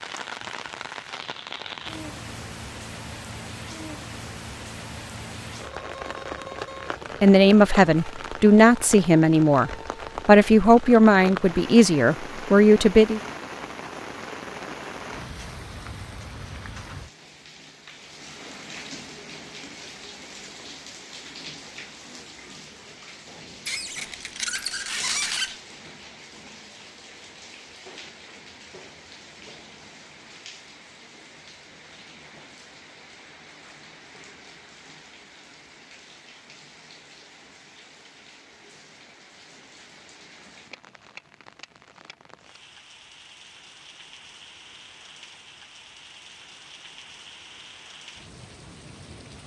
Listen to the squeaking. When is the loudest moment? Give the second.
25 s.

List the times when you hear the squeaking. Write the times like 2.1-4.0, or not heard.
23.6-25.6.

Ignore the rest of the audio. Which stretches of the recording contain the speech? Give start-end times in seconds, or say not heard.
7.2-13.2.